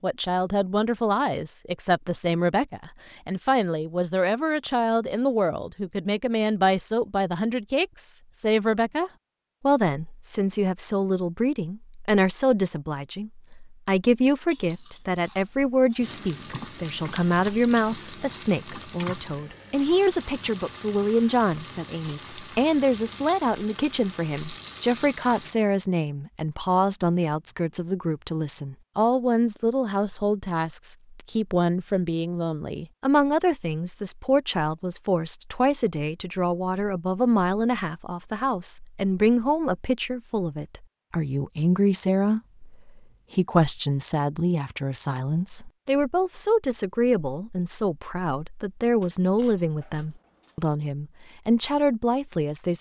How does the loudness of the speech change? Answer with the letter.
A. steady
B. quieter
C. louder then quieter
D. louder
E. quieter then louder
A.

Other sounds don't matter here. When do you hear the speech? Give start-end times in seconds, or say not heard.
0.0-52.7.